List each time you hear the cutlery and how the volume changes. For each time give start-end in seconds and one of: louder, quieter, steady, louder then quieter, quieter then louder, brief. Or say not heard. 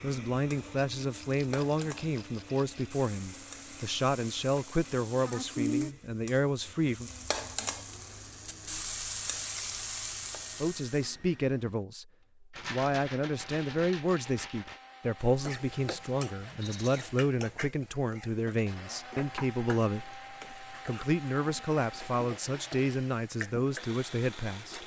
not heard.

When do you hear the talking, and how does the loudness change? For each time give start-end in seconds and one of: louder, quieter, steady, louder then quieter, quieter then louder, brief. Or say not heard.
0.0-7.1 steady
10.6-24.8 steady.